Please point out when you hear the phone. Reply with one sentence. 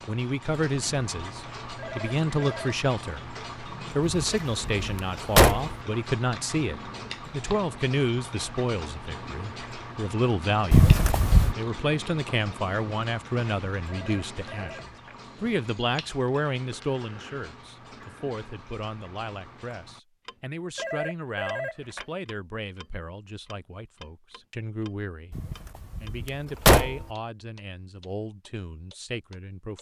The phone can be heard from 1.8 to 2.8 s, from 13.8 to 15.2 s and from 20.8 to 22.1 s.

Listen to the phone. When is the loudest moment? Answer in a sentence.
The volume of the phone peaks at 22 seconds.